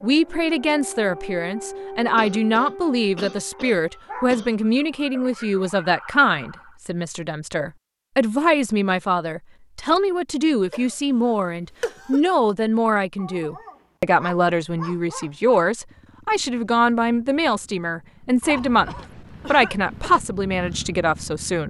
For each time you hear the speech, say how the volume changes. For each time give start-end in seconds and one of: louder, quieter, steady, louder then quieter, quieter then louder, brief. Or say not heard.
0.0-21.6 steady.